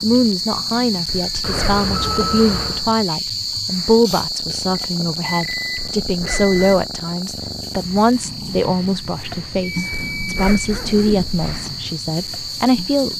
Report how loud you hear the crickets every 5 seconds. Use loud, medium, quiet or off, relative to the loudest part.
loud, medium, medium.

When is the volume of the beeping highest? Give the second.
2 s.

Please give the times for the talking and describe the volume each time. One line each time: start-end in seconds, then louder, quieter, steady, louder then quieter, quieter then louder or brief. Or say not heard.
0.0-13.1 steady.